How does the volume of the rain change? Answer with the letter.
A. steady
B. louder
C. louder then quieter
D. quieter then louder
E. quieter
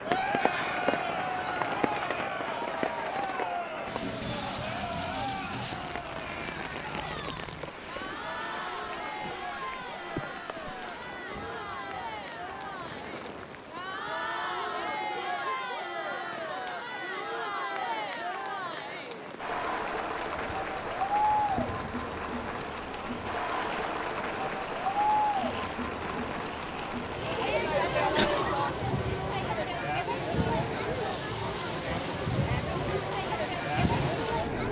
D.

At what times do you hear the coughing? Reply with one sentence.
The coughing can be heard from 28.1 to 28.7 s.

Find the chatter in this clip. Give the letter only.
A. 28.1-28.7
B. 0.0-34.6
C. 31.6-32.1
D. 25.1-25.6
B.